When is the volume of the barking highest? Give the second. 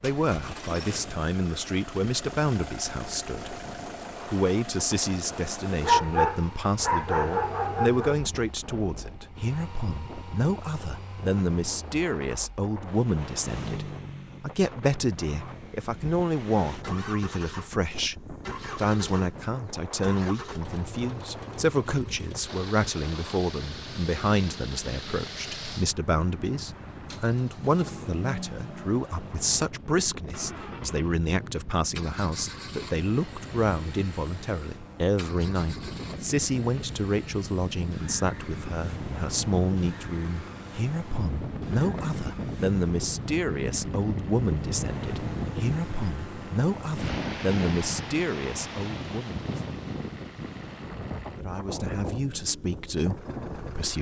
6 s.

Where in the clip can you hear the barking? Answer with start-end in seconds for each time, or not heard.
5.8-8.2.